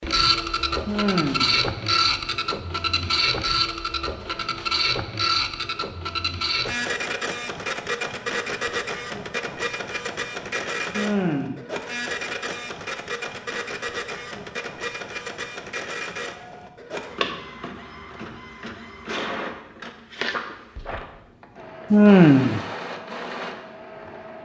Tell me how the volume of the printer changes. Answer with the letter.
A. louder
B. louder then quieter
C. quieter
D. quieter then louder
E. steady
C.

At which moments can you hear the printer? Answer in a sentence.
The printer can be heard from 0.0 to 24.4 s.